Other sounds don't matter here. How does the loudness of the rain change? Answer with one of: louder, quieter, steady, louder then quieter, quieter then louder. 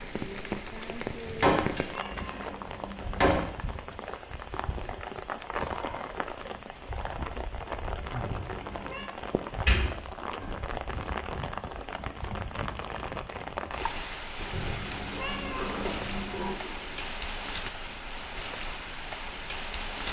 steady.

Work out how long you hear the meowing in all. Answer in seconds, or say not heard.
5 s.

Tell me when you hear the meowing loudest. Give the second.
15 s.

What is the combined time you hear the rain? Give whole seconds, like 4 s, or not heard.
20 s.